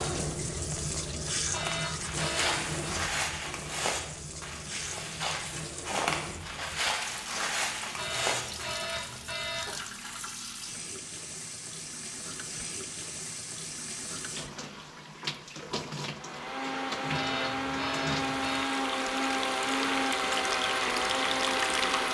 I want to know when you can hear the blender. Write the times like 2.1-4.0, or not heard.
16.1-22.0.